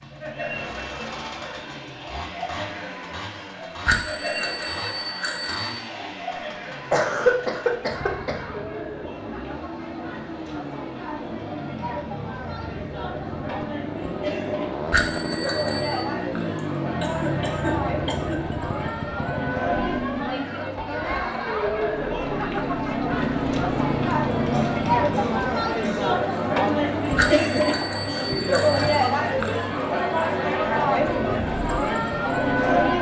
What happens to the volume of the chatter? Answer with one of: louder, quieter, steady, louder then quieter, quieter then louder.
louder.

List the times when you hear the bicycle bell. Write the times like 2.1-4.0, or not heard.
3.9-5.8, 14.9-16.0, 27.1-29.1.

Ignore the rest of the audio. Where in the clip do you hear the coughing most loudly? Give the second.
7 s.